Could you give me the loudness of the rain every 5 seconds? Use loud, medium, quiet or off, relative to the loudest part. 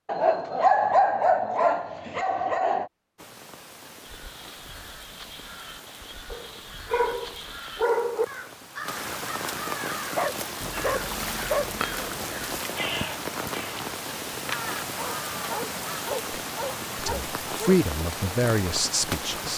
quiet, medium, loud, loud.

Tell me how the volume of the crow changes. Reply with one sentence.
The loudness of the crow goes up.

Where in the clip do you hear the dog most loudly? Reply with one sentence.
The volume of the dog peaks at 1 second.